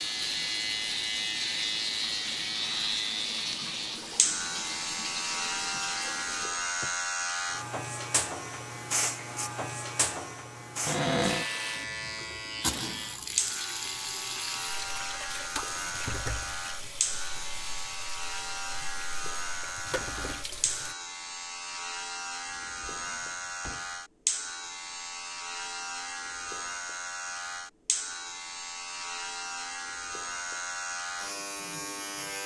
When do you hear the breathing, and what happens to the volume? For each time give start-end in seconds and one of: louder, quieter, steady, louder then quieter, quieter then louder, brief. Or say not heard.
not heard.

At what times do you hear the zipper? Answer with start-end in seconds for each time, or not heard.
not heard.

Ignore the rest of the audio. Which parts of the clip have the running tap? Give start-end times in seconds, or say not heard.
0.0-6.5, 11.2-20.9.